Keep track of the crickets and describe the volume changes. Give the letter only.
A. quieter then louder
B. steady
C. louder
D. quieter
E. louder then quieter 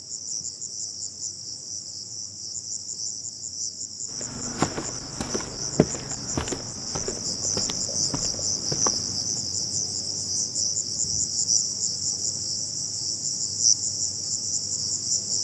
C.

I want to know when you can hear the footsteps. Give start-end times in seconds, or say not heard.
4.1-9.4.